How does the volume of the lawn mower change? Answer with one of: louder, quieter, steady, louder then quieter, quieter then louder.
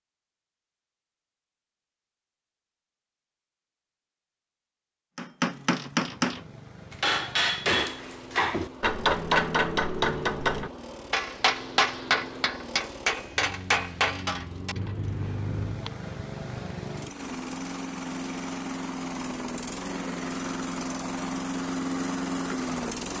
louder.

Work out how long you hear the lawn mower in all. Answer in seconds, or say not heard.
18 s.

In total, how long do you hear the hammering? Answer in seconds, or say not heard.
11 s.